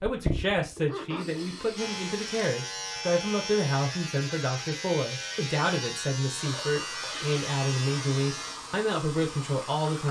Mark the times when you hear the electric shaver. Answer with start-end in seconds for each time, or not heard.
1.8-10.0.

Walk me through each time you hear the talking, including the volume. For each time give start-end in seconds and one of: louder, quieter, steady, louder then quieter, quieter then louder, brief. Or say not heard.
0.0-10.0 steady.